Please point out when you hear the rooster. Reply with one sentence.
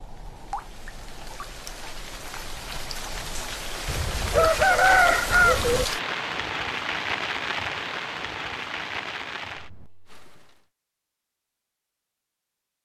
You can hear the rooster from 3.9 to 5.8 s.